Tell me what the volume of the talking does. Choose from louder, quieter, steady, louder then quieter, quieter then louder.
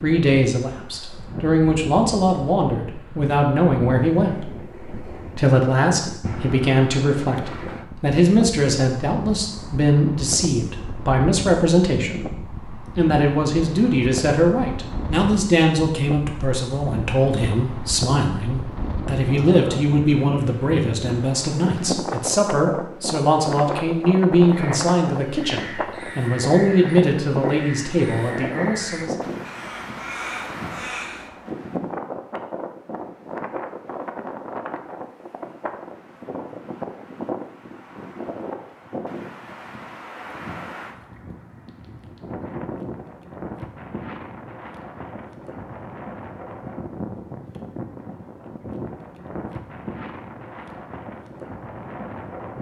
steady.